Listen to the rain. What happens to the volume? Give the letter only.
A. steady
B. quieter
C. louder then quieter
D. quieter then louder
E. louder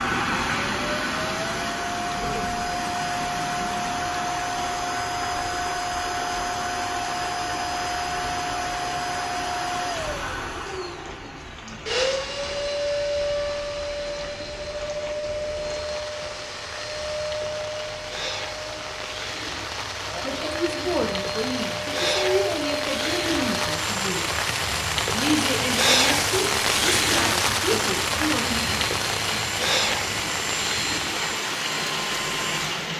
E.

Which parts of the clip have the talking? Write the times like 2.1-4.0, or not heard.
20.2-24.2, 25.1-28.6.